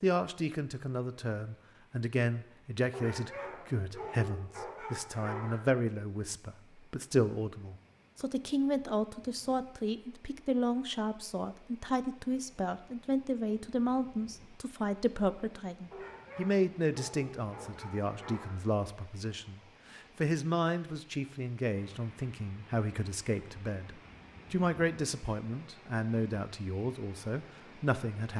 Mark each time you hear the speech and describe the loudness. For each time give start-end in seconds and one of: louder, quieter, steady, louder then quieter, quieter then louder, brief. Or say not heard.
0.0-28.3 steady.